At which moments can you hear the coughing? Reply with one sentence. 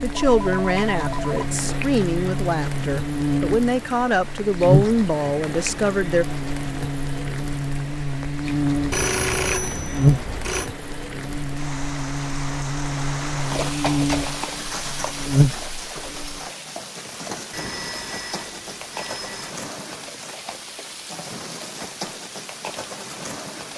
You can't hear the coughing here.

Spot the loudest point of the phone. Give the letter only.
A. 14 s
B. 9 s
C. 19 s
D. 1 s
B.